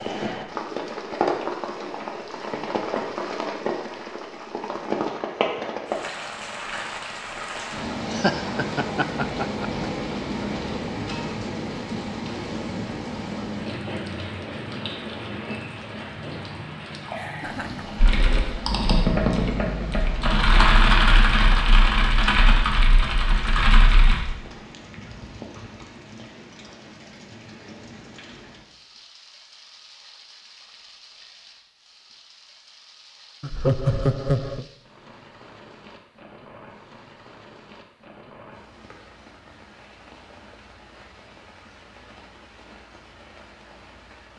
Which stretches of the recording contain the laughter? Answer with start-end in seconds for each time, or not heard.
8.1-9.8, 17.1-18.0, 33.4-34.6.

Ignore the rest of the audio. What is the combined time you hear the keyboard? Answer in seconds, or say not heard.
6 s.